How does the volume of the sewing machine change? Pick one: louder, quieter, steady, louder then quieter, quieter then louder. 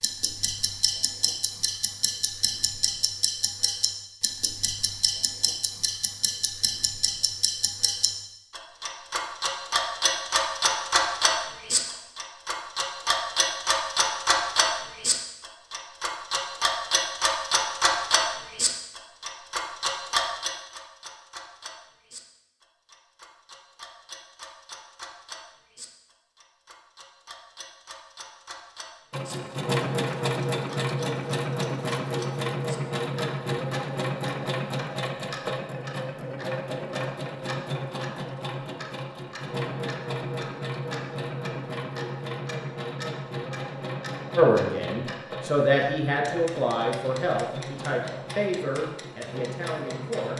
quieter.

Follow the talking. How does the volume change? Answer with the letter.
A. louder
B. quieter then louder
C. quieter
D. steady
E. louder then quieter
C.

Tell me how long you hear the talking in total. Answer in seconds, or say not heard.
6 s.